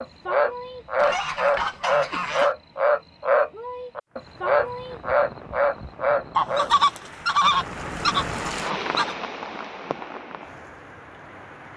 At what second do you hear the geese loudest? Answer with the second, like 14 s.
7 s.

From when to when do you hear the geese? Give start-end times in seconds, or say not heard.
0.9-2.5, 6.3-9.2.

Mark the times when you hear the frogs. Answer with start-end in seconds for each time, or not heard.
0.0-6.7.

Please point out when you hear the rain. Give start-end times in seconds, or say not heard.
4.1-11.7.